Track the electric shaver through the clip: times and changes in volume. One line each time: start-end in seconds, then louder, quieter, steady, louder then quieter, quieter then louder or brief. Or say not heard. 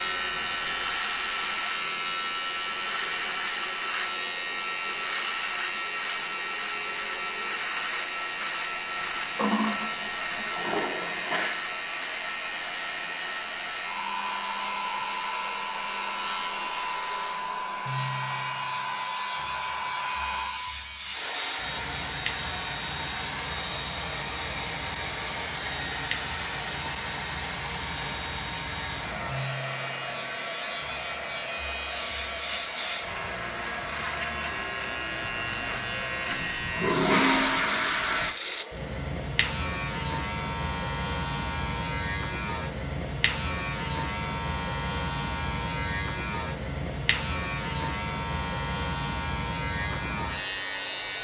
0.0-51.1 quieter then louder.